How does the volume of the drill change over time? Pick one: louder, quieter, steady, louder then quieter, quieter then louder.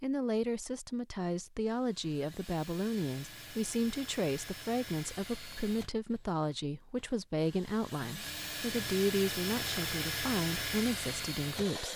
louder.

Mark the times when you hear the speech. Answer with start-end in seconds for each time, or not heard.
0.0-11.9.